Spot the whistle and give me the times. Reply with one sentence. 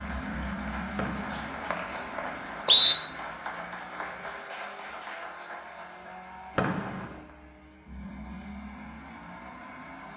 The whistle can be heard from 0.9 to 3.0 s and from 6.5 to 7.0 s.